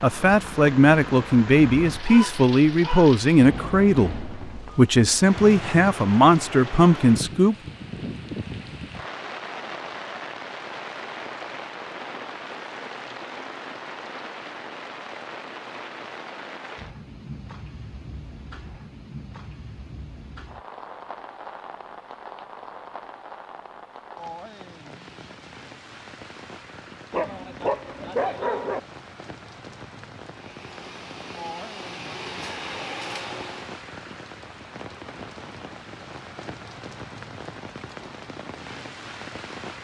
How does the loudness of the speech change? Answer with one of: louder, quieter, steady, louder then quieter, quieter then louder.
steady.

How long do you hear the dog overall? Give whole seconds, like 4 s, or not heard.
3 s.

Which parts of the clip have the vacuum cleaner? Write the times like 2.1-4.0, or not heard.
30.2-33.8.